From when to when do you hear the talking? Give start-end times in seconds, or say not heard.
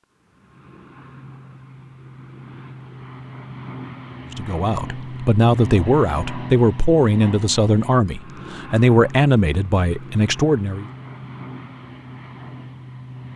4.3-10.8.